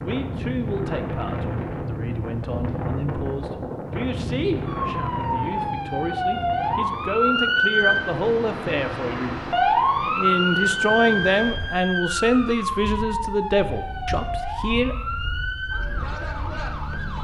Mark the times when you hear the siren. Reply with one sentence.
You can hear the siren from 4.7 to 17.1 s.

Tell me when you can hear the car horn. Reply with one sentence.
The car horn can't be heard in this clip.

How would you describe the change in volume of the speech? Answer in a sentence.
The loudness of the speech goes up.